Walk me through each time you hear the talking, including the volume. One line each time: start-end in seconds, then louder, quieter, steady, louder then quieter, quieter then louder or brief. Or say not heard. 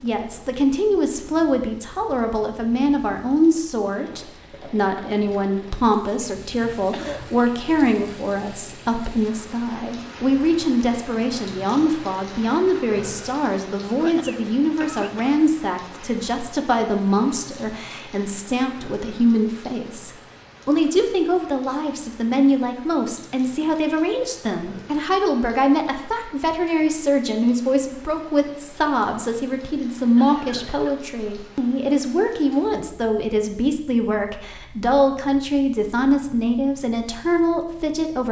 0.0-38.2 steady.